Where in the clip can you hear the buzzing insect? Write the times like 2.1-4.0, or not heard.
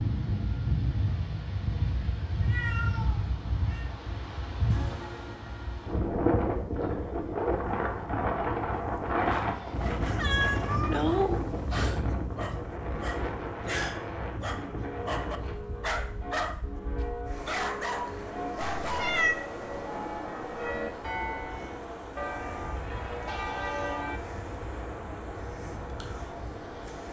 not heard.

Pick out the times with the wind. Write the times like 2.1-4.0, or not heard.
0.0-27.0.